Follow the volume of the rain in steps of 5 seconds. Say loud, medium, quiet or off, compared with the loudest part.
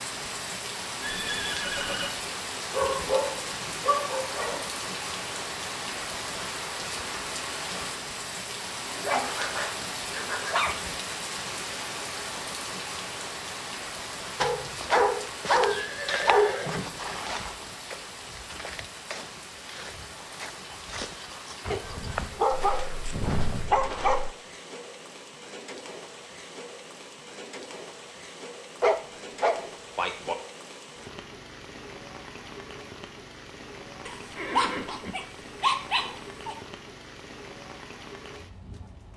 loud, loud, loud, medium, medium, medium, medium, medium.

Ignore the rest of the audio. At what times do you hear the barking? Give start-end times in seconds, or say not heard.
2.7-4.7, 8.9-10.8, 14.4-16.6, 21.7-24.2, 28.8-30.4, 34.0-36.5.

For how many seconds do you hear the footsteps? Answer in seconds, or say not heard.
10 s.